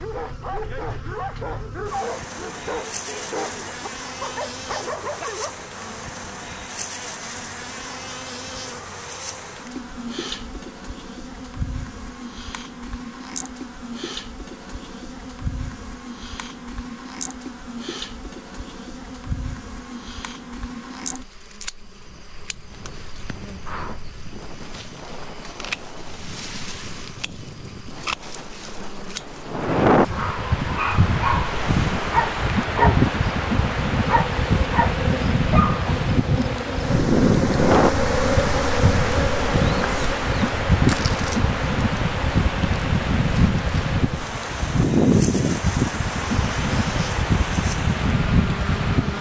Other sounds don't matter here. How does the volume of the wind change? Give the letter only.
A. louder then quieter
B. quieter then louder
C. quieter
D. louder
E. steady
D.